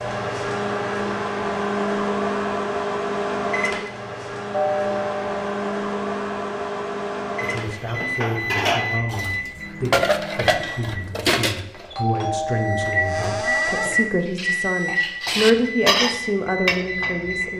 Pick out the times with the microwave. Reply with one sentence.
The microwave can be heard from 0.0 to 11.1 s and from 12.5 to 17.5 s.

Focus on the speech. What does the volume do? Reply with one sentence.
The volume of the speech goes up.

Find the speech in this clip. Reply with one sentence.
You can hear the speech from 7.4 to 17.5 s.